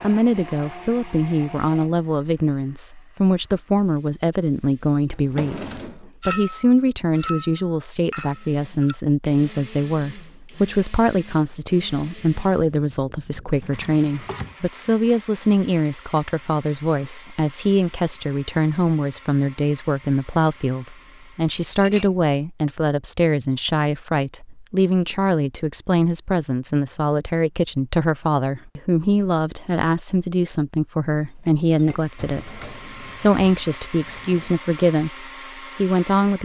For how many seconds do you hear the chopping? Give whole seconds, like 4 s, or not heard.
not heard.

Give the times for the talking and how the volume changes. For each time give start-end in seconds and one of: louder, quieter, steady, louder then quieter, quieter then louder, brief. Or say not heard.
0.0-36.4 steady.